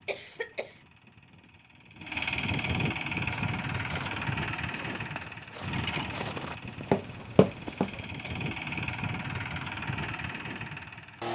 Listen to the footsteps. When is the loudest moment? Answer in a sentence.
The volume of the footsteps peaks at 7 seconds.